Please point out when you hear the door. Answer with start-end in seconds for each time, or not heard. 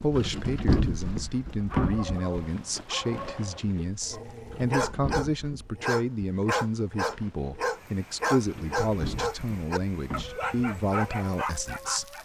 0.1-2.1, 4.5-5.8, 8.5-10.4.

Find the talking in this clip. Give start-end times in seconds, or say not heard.
0.0-12.2.